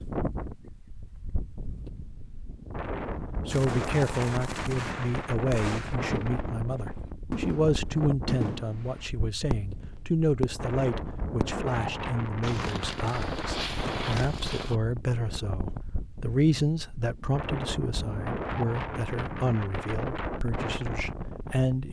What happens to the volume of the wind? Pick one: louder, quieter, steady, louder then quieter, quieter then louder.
steady.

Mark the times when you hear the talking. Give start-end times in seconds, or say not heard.
2.7-21.8.